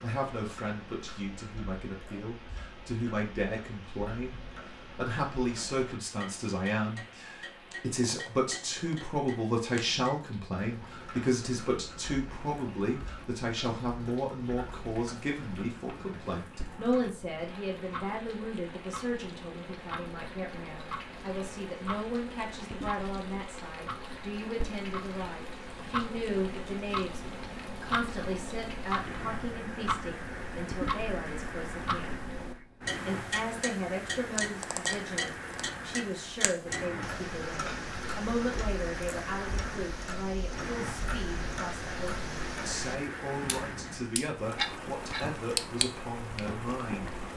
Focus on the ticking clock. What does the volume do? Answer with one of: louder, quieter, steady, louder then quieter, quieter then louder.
louder.